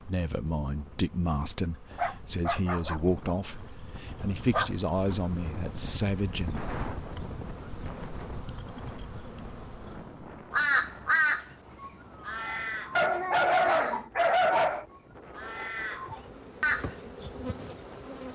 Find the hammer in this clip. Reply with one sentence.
You can't hear the hammer here.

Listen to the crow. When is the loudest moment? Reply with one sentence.
The loudest moment of the crow is at 11 seconds.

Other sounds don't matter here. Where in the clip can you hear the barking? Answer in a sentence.
The barking can be heard from 1.9 to 3.4 s, from 4.1 to 4.7 s and from 12.9 to 14.8 s.